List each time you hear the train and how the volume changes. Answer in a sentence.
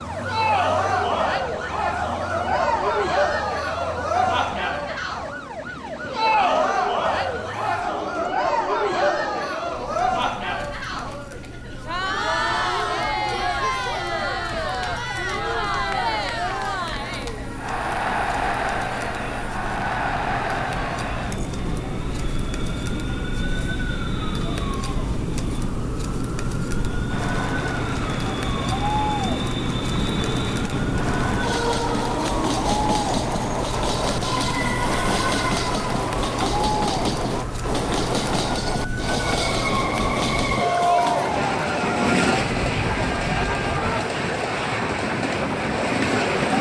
The train can be heard from 0.0 to 46.5 s, getting louder.